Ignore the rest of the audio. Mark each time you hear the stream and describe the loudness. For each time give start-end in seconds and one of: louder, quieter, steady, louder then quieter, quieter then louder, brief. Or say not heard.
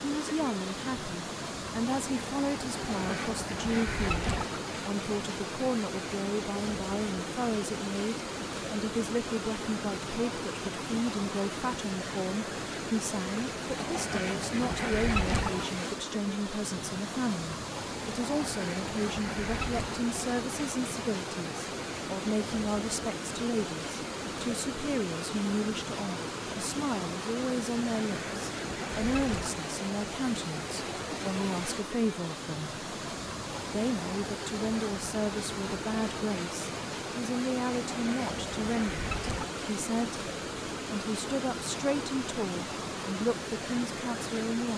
0.0-44.7 steady.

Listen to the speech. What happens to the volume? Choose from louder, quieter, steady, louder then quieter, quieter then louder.
steady.